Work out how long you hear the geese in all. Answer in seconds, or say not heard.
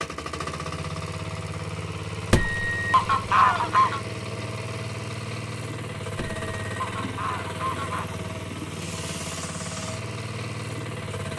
4 s.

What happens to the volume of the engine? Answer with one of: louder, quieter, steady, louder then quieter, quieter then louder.
steady.